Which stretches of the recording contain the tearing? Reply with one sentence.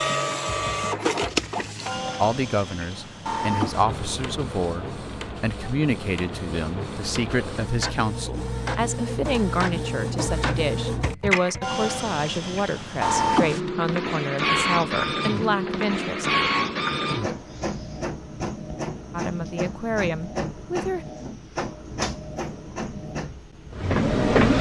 You can't hear the tearing here.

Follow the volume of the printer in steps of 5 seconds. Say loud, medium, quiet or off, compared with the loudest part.
loud, medium, loud, loud, loud.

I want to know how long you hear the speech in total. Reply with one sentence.
The speech can be heard for 16 seconds in total.